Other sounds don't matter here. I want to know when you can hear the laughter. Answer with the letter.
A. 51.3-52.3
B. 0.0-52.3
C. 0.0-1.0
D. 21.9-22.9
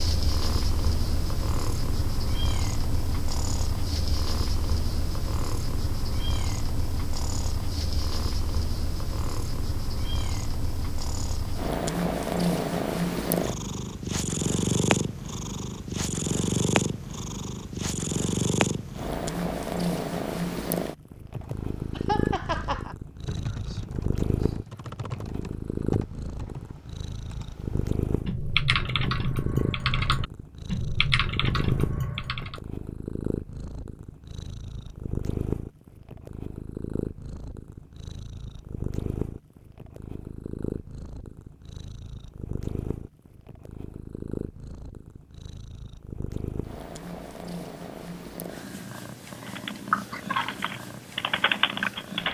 D.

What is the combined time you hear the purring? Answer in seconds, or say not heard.
52 s.